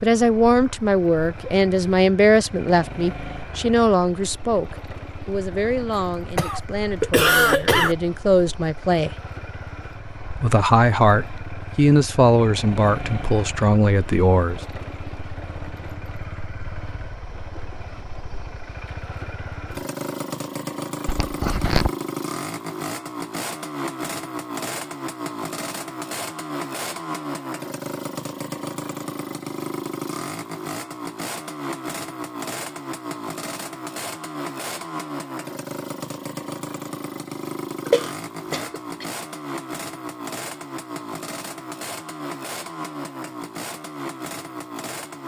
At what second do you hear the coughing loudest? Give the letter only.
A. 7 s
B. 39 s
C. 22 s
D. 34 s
A.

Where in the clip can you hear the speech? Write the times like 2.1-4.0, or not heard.
0.0-9.2, 10.3-14.6.